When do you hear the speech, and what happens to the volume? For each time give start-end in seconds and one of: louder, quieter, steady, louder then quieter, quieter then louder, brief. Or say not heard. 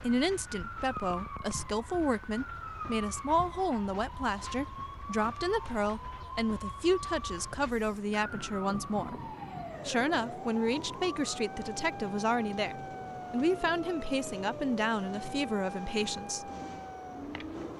0.0-16.5 steady.